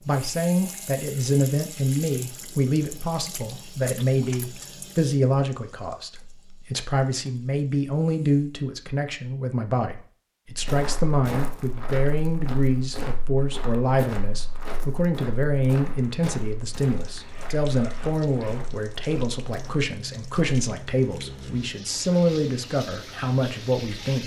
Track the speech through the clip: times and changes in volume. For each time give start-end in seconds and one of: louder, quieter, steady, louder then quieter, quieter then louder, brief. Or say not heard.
0.0-24.2 steady.